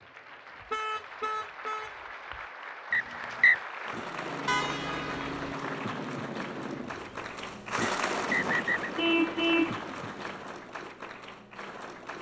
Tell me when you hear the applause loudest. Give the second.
8 s.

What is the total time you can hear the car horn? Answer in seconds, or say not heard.
4 s.